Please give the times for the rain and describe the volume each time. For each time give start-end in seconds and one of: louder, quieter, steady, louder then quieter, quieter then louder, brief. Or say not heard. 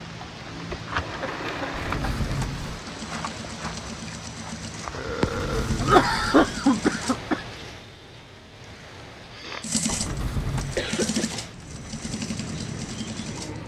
0.0-13.6 quieter then louder.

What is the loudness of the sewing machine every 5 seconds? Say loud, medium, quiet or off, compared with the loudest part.
medium, loud, loud.